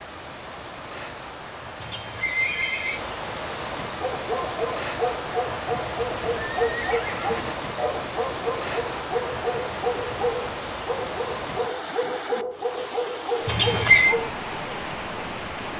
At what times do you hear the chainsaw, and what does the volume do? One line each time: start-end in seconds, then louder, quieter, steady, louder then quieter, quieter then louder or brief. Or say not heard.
not heard.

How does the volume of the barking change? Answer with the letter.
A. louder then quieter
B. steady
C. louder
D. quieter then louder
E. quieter
B.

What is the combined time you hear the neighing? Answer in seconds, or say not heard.
4 s.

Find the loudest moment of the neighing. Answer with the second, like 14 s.
14 s.